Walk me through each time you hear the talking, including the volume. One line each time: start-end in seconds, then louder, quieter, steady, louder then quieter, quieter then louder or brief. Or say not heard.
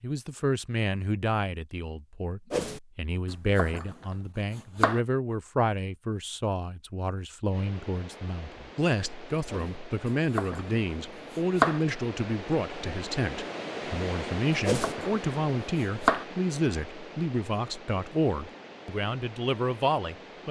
0.0-20.4 steady.